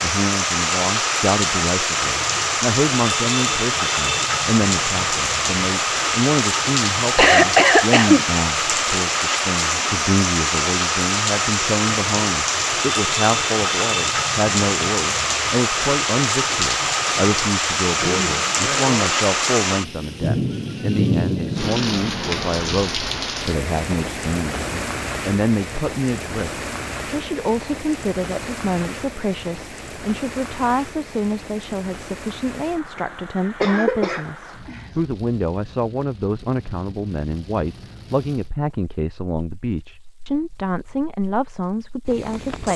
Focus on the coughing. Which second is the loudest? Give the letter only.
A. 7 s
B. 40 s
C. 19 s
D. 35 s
A.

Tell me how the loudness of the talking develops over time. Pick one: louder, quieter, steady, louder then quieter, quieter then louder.
steady.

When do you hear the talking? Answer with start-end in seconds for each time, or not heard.
0.0-42.7.